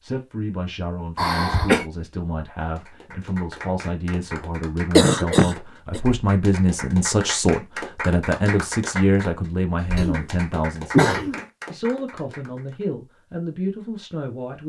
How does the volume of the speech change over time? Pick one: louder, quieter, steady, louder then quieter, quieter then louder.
louder then quieter.